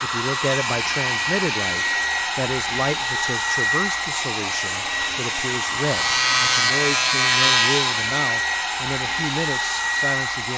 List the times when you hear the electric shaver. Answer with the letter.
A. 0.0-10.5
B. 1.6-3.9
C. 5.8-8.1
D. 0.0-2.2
C.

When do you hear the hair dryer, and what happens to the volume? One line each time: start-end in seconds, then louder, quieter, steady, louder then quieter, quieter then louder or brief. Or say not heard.
0.0-10.5 steady.